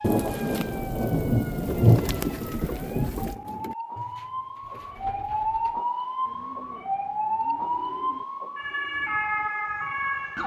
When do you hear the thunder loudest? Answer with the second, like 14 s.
2 s.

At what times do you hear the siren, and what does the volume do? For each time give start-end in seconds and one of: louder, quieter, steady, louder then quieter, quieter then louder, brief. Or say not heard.
0.0-10.4 louder.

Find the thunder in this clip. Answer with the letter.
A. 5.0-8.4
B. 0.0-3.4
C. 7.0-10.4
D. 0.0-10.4
B.